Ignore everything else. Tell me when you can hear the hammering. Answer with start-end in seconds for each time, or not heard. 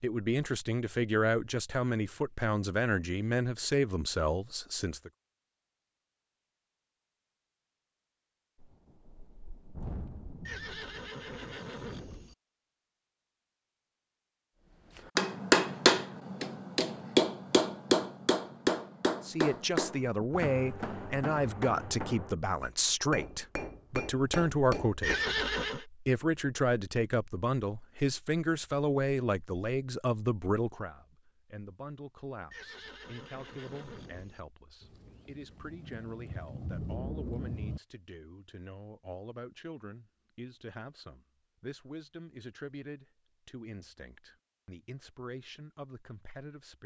15.2-25.2.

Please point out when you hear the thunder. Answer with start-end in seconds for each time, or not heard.
8.6-11.6, 34.8-37.8.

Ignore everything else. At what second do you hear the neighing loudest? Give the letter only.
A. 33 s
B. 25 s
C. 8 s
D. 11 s
B.